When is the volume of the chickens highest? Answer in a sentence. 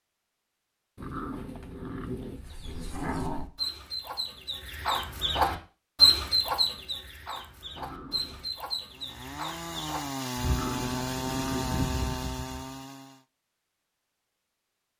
The volume of the chickens peaks at 6 seconds.